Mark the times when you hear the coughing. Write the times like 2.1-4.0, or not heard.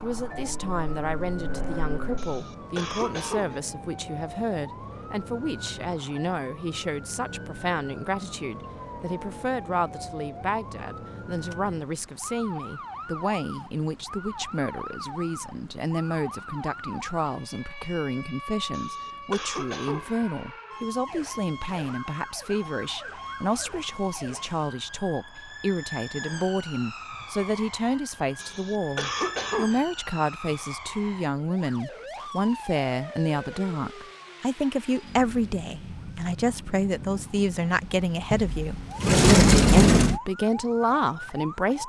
2.1-3.6, 18.7-20.1, 28.4-29.8.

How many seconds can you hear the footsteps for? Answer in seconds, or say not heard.
not heard.